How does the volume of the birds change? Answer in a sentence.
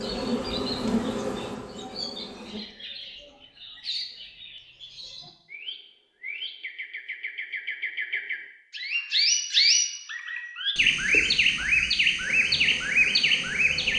The volume of the birds goes up.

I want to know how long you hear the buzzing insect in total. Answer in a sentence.
The buzzing insect can be heard for 4 seconds in total.